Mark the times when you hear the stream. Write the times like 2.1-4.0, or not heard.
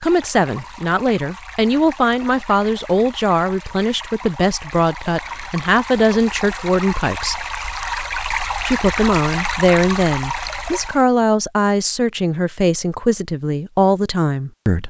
0.0-11.1.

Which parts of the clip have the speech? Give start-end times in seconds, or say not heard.
0.0-7.5, 8.7-14.8.